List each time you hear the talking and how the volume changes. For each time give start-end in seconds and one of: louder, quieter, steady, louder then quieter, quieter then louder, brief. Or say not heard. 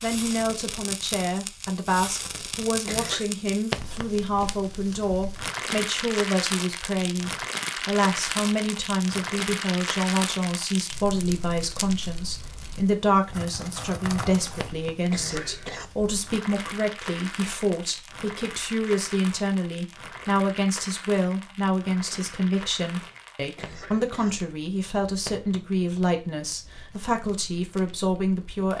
0.0-28.7 steady.